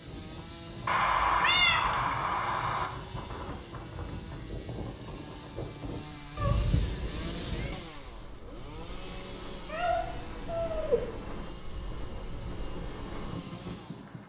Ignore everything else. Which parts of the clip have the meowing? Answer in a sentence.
The meowing can be heard from 0.8 to 2.9 s, from 6.3 to 7.8 s and from 9.7 to 11.1 s.